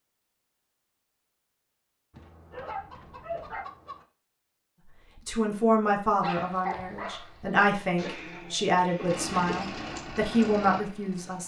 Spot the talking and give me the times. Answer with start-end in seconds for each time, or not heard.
5.2-11.4.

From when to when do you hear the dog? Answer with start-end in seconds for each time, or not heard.
2.5-3.6, 6.2-7.6.